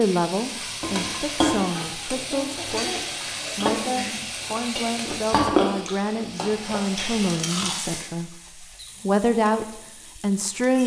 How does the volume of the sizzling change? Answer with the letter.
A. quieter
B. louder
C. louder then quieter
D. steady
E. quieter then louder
A.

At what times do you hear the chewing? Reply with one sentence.
The chewing can be heard from 5.0 to 7.8 s.